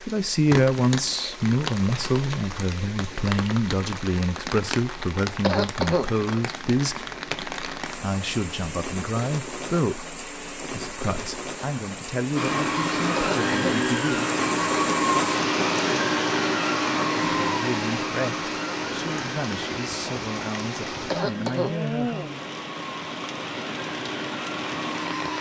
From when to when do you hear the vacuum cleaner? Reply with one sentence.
You can hear the vacuum cleaner from 12.3 to 25.3 s.